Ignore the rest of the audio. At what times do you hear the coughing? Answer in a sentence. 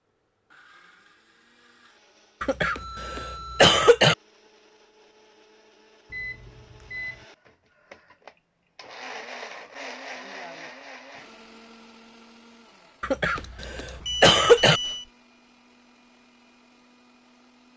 You can hear the coughing from 2.4 to 4.2 s and from 13.0 to 14.8 s.